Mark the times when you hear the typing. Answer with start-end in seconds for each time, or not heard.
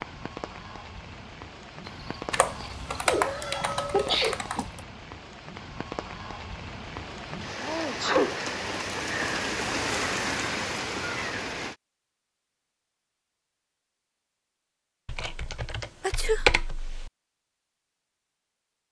2.3-4.8, 15.1-17.1.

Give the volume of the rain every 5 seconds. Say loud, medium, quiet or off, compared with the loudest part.
medium, loud, loud, off.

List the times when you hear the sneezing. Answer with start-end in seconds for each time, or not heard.
1.9-4.3, 7.5-8.4, 16.0-16.5.